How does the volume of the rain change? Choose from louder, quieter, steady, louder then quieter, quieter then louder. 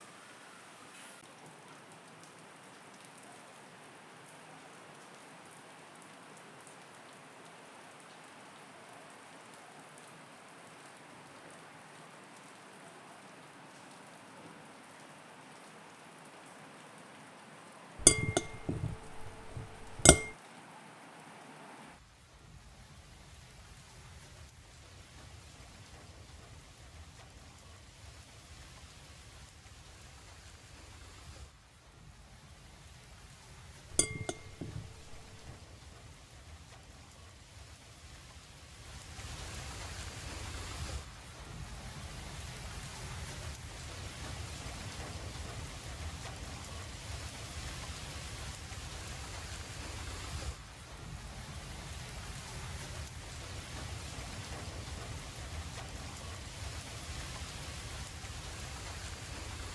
louder.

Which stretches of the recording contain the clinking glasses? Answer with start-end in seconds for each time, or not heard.
18.0-20.3, 33.9-35.5.